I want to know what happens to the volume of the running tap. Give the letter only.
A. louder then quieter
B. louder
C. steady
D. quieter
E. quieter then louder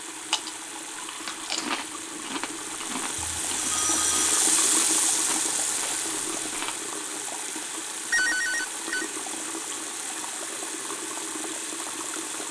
A.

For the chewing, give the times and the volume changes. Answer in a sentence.
You can hear the chewing from 0.1 to 6.9 s, getting quieter.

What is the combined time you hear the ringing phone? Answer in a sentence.
You can hear the ringing phone for 2 seconds altogether.